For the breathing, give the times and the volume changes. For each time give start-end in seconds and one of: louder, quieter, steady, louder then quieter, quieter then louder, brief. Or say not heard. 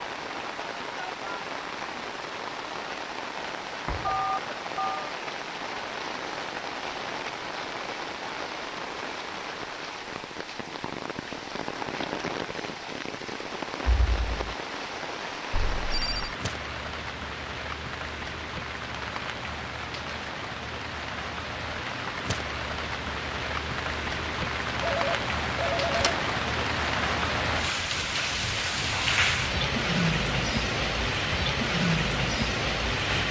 not heard.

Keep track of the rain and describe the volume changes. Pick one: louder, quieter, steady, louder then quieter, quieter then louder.
louder.